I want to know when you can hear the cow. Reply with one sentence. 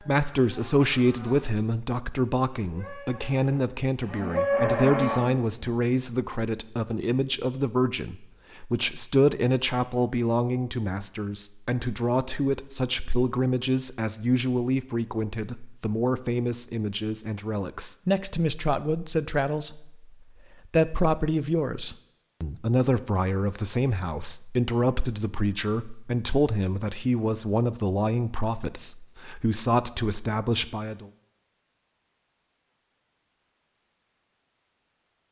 You can hear the cow from 0.0 to 1.6 s and from 2.5 to 5.7 s.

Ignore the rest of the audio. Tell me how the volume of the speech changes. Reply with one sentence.
The volume of the speech stays about the same.